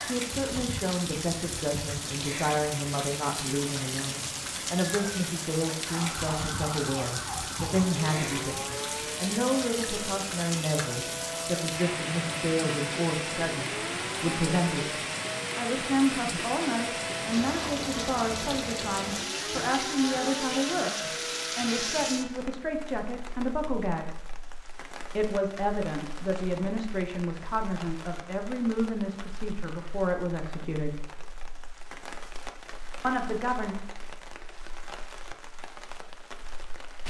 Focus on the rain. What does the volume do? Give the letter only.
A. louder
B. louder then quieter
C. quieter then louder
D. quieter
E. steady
D.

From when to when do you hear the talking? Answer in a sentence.
The talking can be heard from 0.0 to 14.9 s, from 15.6 to 24.1 s, from 25.1 to 31.0 s and from 33.0 to 33.8 s.